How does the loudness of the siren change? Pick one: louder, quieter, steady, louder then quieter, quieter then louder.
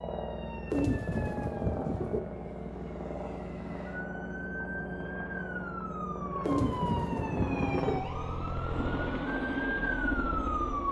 louder.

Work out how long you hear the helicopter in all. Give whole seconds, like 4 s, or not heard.
11 s.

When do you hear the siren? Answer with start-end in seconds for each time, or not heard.
0.0-10.8.